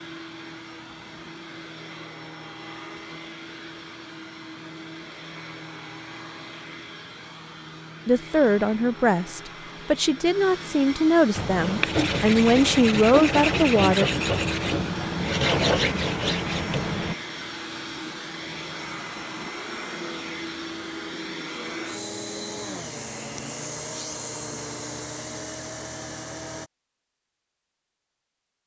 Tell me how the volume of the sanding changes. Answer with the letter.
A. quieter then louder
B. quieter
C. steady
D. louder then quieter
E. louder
C.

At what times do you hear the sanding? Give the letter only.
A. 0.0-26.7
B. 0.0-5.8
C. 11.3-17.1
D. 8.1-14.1
C.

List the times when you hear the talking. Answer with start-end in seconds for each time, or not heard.
8.1-14.1.